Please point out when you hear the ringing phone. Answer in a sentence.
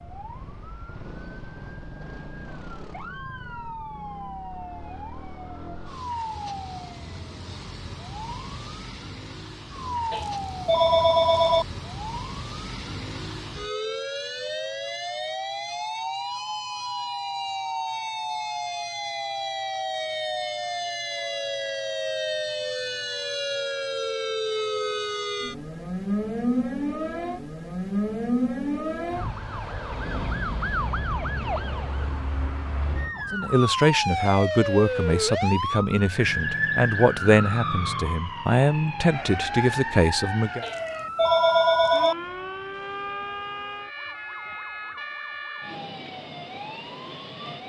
You can hear the ringing phone from 10.1 to 11.7 s and from 40.6 to 42.1 s.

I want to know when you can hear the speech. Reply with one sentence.
You can hear the speech from 33.3 to 40.6 s.